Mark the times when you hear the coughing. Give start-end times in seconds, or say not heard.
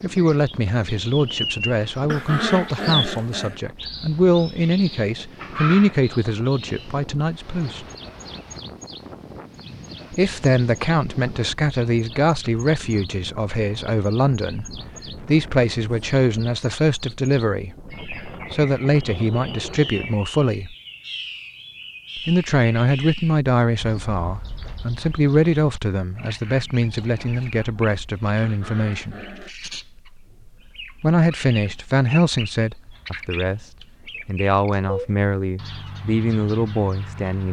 not heard.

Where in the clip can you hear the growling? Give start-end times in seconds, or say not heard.
2.0-3.6, 28.4-29.5.